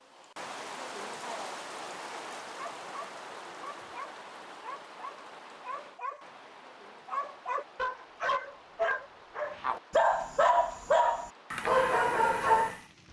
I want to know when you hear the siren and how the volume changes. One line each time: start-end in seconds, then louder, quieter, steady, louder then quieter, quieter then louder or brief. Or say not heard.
not heard.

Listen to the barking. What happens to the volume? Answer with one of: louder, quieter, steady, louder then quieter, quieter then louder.
louder.